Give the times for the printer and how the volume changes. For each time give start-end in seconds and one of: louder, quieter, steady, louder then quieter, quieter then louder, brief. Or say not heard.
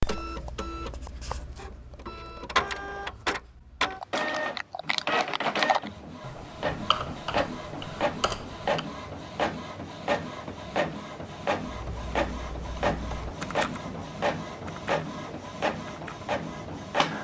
0.0-17.1 steady.